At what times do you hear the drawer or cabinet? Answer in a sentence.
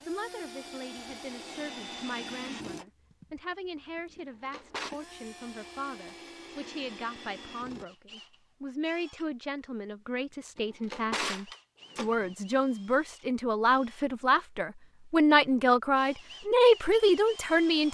The drawer or cabinet can be heard from 4.5 to 4.9 s and from 10.6 to 12.3 s.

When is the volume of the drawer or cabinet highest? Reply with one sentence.
The loudest moment of the drawer or cabinet is at 11 seconds.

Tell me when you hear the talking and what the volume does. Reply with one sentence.
You can hear the talking from 0.1 to 17.8 s, getting louder.